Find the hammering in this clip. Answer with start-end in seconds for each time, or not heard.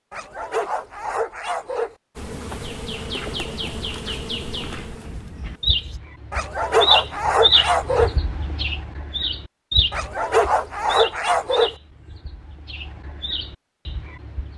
not heard.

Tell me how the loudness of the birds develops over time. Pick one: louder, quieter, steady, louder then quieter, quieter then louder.
louder then quieter.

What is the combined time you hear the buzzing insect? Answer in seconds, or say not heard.
4 s.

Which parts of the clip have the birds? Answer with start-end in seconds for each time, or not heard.
2.6-14.5.